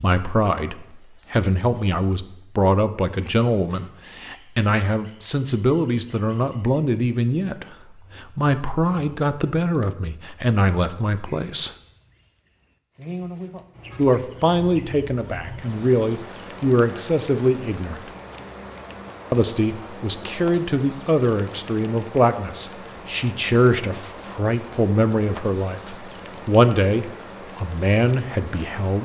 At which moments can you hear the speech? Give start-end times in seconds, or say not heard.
0.0-11.8, 13.9-18.1, 19.3-28.9.